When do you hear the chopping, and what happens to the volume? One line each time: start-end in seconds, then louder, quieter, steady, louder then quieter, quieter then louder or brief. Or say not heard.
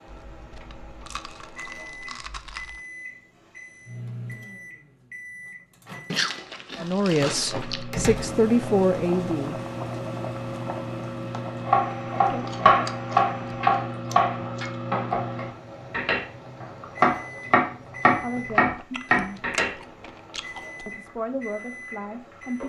11.7-19.7 quieter then louder.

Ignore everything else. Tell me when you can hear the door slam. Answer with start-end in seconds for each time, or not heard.
7.9-8.4.